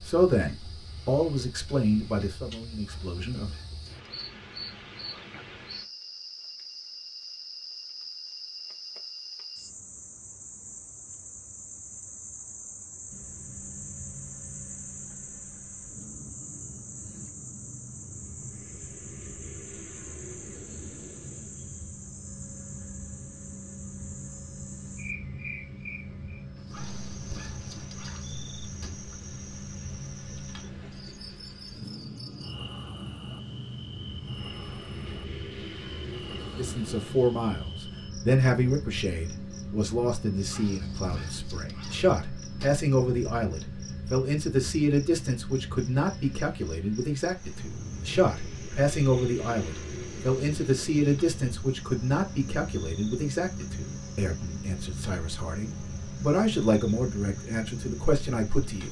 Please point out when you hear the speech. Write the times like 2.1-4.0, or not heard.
0.0-3.5, 36.5-58.8.